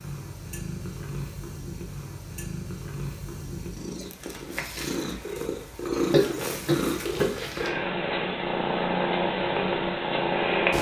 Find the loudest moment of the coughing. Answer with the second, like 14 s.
6 s.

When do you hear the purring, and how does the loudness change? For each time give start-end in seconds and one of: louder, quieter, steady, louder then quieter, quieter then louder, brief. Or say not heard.
0.0-10.7 louder.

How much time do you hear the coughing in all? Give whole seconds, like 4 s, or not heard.
2 s.